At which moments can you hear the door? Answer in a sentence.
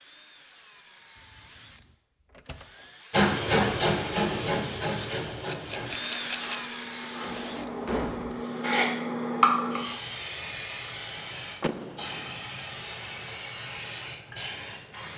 You can hear the door from 1.3 to 2.9 s, from 7.2 to 8.4 s and from 11.6 to 12.3 s.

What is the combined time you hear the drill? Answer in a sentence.
You can hear the drill for 9 seconds altogether.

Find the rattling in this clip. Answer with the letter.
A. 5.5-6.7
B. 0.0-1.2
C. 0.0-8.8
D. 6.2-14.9
A.